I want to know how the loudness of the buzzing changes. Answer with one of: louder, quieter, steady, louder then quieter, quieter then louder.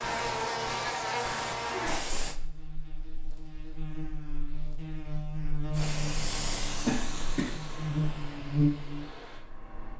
quieter then louder.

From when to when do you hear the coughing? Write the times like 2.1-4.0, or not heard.
6.8-7.6.